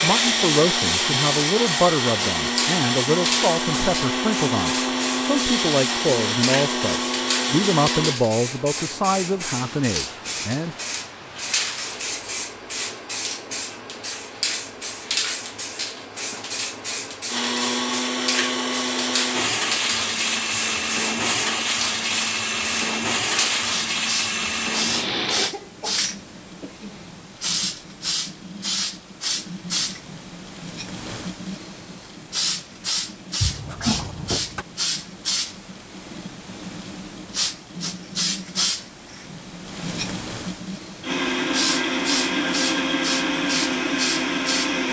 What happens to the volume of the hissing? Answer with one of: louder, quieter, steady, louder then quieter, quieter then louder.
steady.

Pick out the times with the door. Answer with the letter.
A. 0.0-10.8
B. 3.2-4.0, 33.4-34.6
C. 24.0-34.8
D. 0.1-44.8
B.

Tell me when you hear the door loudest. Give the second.
34 s.